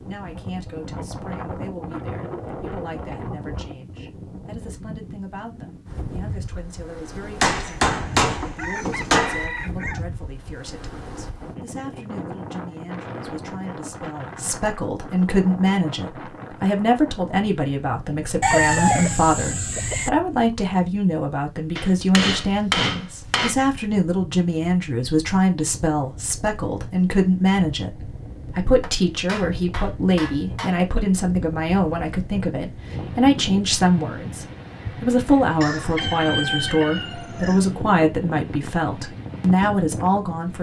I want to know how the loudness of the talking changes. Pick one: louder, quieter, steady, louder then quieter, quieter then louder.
louder.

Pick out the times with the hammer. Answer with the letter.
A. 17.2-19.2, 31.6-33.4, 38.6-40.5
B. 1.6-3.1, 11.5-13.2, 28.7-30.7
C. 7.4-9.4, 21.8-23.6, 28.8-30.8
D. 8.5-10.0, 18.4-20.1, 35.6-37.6
C.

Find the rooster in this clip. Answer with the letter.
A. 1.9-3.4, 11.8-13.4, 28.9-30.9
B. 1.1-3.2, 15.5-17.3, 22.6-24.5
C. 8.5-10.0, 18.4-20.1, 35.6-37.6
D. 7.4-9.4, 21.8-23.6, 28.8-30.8
C.